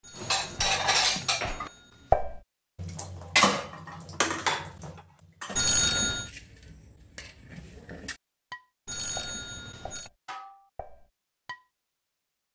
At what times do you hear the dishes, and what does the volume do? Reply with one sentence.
You can hear the dishes from 0.1 to 11.7 s, getting quieter.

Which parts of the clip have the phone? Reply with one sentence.
You can hear the phone from 0.0 to 2.1 s, from 5.5 to 6.3 s and from 8.8 to 10.1 s.